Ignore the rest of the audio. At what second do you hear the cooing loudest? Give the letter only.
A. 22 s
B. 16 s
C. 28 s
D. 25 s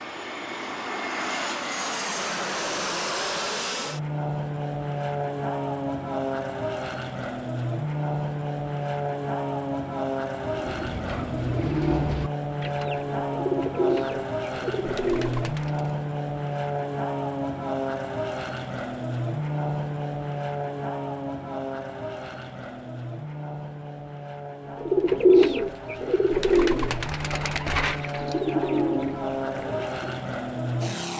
D.